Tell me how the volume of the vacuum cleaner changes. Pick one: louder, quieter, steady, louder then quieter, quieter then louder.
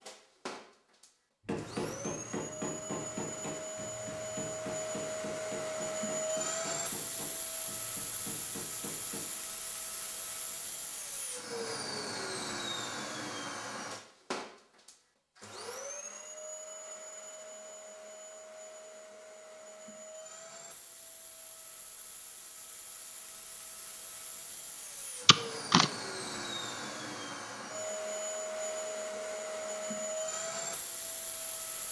quieter then louder.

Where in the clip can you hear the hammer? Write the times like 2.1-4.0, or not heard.
1.4-9.2.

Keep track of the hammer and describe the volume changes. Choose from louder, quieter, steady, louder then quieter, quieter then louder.
quieter.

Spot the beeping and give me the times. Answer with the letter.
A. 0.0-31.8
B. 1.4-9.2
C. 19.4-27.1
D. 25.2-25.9
D.